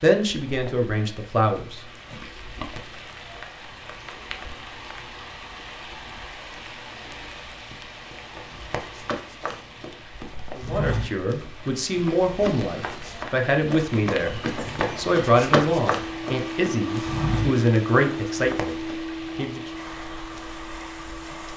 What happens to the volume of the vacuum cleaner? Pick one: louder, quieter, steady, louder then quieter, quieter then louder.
quieter.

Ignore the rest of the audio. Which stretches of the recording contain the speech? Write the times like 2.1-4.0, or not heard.
0.0-1.8, 10.6-19.6.